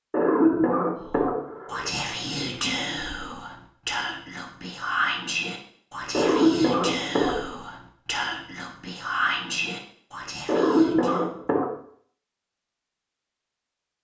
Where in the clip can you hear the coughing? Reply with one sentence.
You can hear the coughing from 0.1 to 1.9 s, from 6.1 to 7.5 s and from 10.4 to 11.8 s.